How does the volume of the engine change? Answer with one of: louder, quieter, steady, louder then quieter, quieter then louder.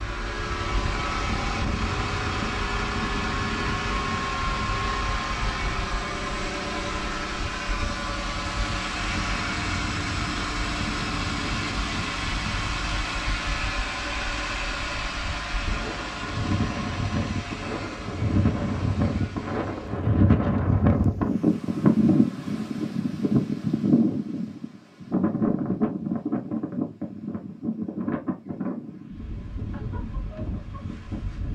quieter.